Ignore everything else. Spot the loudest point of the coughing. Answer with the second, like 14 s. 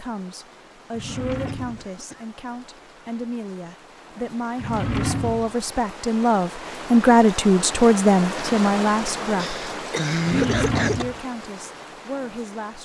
10 s.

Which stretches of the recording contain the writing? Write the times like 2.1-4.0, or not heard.
not heard.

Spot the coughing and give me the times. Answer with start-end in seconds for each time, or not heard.
1.4-2.3, 9.3-11.1.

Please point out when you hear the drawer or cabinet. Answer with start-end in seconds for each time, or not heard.
0.9-1.9, 4.5-5.5, 10.2-11.2.